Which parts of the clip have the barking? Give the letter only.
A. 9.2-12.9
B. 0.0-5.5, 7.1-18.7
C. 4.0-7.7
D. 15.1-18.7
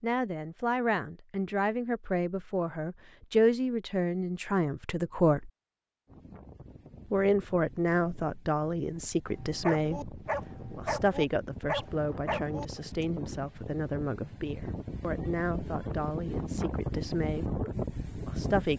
A.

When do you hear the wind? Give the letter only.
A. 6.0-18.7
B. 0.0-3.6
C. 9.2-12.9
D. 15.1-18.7
A.